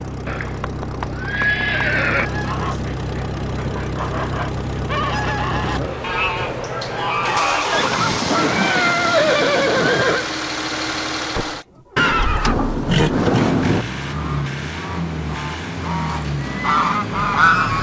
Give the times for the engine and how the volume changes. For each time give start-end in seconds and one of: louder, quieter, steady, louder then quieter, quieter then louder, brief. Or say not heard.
0.0-17.7 steady.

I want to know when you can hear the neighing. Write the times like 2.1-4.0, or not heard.
0.2-2.3, 7.7-10.2, 11.9-13.8.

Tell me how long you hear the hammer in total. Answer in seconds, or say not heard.
not heard.